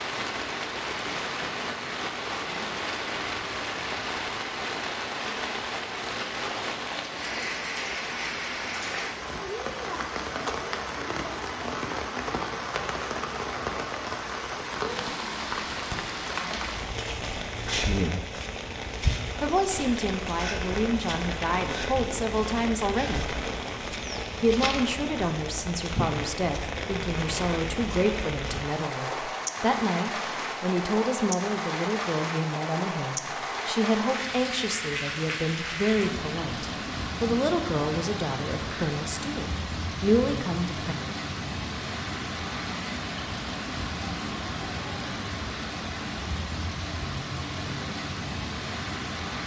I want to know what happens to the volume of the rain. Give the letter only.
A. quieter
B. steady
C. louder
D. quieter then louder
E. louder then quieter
B.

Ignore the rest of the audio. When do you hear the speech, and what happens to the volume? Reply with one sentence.
The speech can be heard briefly from 17.7 to 18.2 s; from 19.4 to 23.4 s, at a steady volume; and from 24.4 to 41.0 s, at a steady volume.